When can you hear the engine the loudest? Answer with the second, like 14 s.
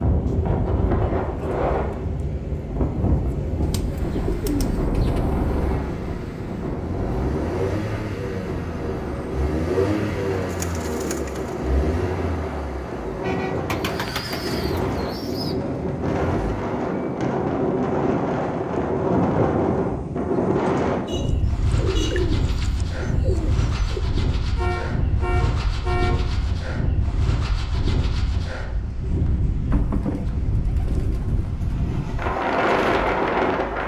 10 s.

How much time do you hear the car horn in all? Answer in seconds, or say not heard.
3 s.